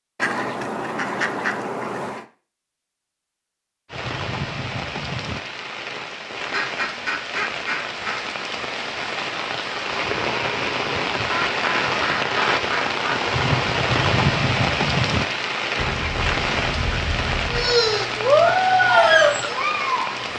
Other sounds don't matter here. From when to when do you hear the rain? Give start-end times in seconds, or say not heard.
3.9-20.3.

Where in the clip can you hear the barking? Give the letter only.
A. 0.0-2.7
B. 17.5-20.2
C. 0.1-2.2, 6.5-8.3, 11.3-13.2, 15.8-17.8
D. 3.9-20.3
B.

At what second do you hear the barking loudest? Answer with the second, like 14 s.
19 s.